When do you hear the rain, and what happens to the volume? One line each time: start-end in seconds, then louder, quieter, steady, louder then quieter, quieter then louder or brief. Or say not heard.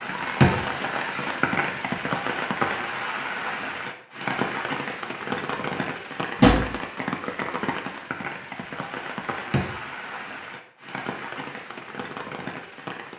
0.0-13.1 quieter.